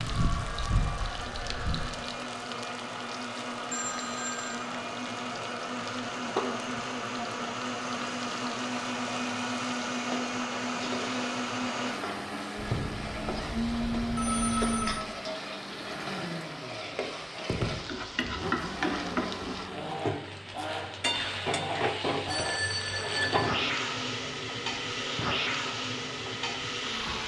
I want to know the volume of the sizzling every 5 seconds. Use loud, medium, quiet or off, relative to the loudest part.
medium, medium, medium, loud, loud, loud.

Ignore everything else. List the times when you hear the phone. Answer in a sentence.
You can hear the phone from 3.7 to 4.6 s, from 12.6 to 15.0 s and from 22.2 to 23.5 s.